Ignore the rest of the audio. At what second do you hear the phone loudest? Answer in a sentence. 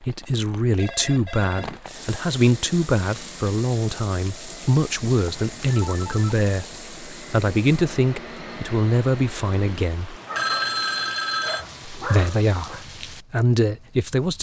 The volume of the phone peaks at 11 seconds.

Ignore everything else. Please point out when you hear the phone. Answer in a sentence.
The phone can be heard from 0.8 to 1.8 s, from 5.5 to 6.3 s and from 10.3 to 11.7 s.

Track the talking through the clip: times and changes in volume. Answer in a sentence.
The talking can be heard from 0.0 to 10.2 s, at a steady volume; and briefly from 11.9 to 14.3 s.